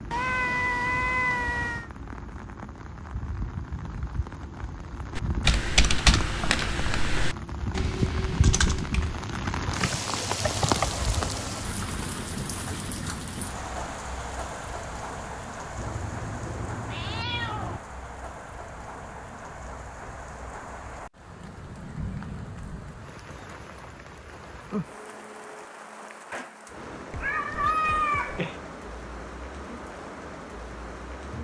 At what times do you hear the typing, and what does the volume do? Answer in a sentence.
The typing can be heard from 5.2 to 10.9 s, getting quieter.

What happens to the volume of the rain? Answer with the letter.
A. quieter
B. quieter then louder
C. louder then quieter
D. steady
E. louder
C.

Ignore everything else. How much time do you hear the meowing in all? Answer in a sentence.
You can hear the meowing for 5 seconds altogether.